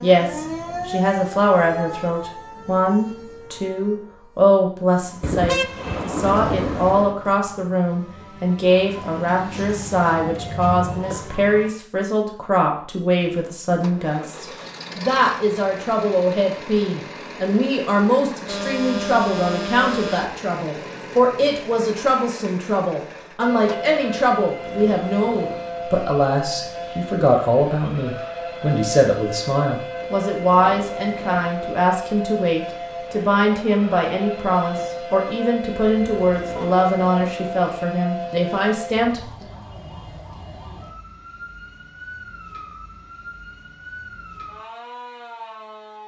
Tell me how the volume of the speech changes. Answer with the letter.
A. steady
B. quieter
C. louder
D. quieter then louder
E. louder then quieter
A.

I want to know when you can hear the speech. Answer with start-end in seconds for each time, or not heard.
0.0-39.5.